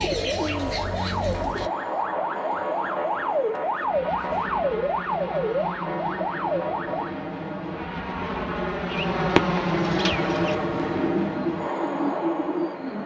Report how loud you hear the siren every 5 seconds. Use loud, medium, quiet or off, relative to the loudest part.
loud, loud, off.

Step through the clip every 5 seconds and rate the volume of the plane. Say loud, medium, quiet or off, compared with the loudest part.
medium, loud, loud.